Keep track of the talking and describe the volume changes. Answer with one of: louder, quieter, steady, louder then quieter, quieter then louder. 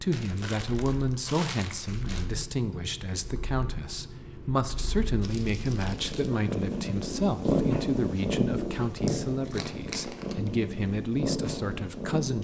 steady.